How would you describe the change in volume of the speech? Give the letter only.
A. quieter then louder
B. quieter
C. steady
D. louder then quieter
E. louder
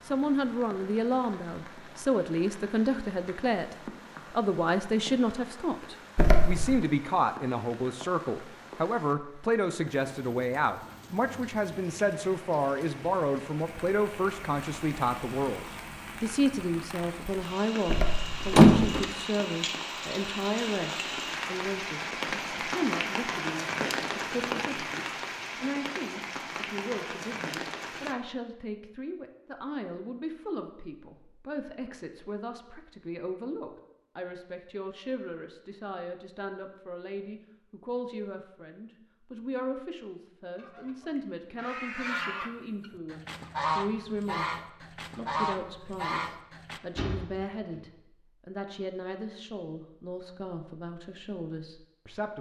B.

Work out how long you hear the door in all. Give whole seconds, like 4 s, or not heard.
3 s.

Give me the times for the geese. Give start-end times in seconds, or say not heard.
40.5-46.8.